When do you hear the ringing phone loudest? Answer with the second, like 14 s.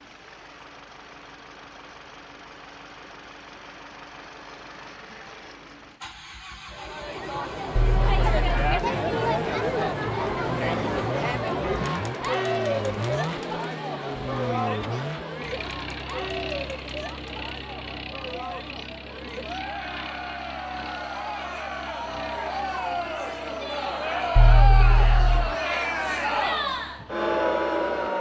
25 s.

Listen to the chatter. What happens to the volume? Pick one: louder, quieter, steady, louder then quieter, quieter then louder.
quieter then louder.